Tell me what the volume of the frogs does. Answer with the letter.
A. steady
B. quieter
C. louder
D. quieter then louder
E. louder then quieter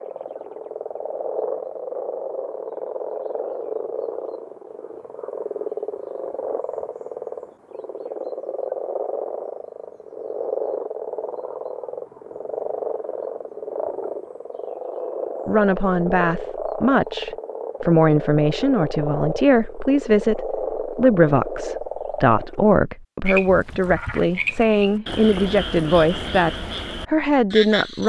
A.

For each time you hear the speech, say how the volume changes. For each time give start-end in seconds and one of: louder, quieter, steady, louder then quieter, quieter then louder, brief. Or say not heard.
15.4-28.0 steady.